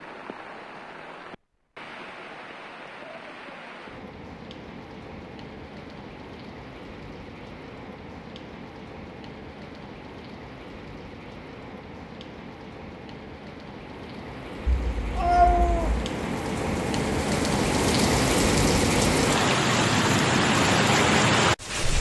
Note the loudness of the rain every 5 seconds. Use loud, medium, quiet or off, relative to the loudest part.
quiet, quiet, quiet, loud, loud.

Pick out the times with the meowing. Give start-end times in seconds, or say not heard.
14.7-16.1.